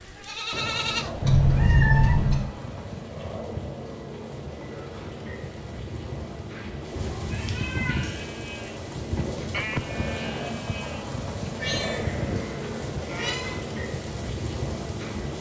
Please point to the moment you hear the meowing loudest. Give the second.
2 s.